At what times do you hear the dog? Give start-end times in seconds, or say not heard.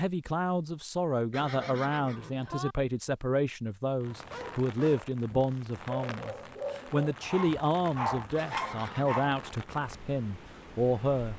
4.1-9.4.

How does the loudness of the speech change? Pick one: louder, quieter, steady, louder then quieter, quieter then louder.
steady.